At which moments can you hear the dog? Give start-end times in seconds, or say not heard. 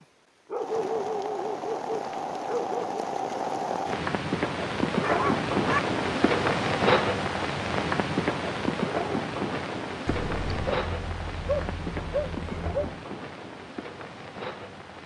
0.5-3.0, 5.0-5.8, 10.1-13.0.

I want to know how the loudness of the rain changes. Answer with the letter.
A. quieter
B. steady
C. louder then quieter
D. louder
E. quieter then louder
C.